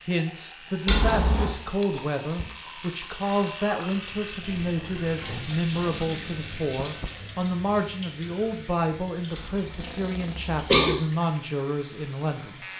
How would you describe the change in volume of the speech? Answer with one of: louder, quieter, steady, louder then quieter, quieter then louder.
steady.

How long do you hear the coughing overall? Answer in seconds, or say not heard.
2 s.